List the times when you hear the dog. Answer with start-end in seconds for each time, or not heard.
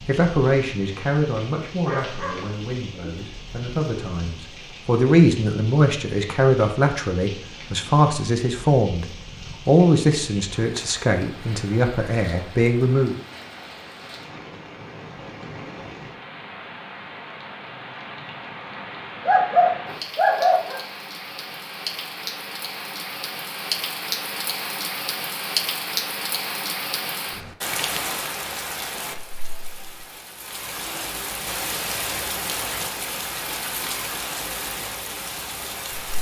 1.7-3.1, 19.2-20.8.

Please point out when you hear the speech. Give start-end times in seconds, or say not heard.
0.0-13.2.